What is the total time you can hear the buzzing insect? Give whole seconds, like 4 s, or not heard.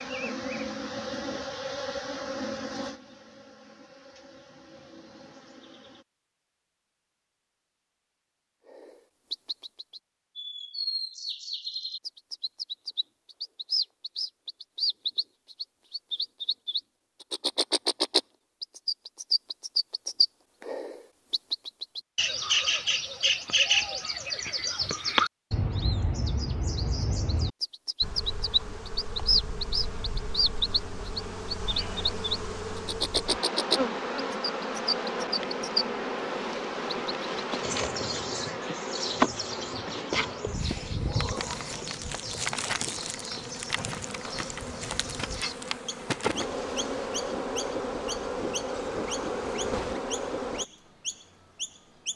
29 s.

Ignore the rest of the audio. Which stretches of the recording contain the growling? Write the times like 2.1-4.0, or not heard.
not heard.